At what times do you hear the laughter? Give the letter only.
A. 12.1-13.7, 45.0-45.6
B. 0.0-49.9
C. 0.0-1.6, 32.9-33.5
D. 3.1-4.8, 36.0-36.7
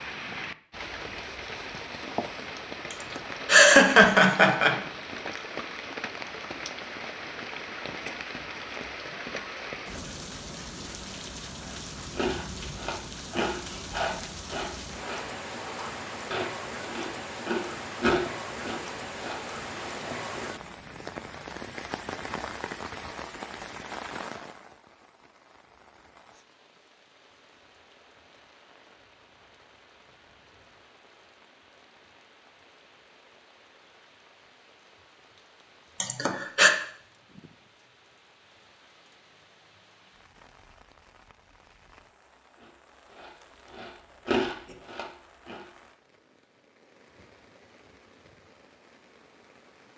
D.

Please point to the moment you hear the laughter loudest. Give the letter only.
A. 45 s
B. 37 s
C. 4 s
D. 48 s
C.